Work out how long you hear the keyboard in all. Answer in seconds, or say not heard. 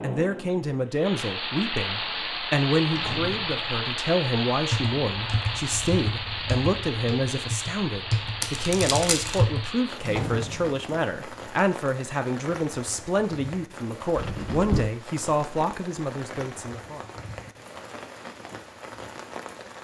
5 s.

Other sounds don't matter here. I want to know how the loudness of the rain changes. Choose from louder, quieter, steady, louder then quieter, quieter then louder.
quieter.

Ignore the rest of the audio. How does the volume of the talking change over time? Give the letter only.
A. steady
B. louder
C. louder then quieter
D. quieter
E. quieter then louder
A.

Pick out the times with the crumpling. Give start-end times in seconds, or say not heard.
8.4-9.4.